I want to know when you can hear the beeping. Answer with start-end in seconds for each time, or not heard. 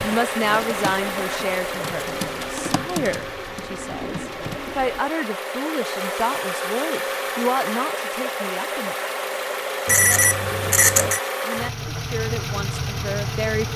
9.8-11.2.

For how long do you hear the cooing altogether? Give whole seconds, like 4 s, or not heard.
5 s.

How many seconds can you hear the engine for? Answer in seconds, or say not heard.
14 s.